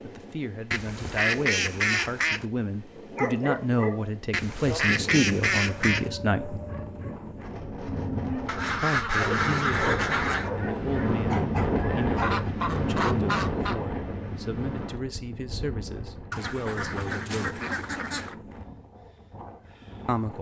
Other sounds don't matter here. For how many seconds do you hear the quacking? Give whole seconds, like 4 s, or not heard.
9 s.